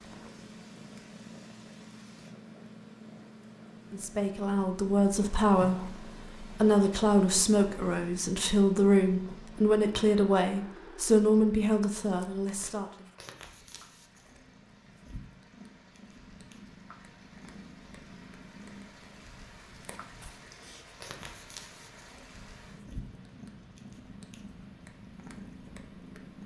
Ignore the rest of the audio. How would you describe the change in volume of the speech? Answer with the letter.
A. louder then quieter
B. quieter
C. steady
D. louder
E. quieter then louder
C.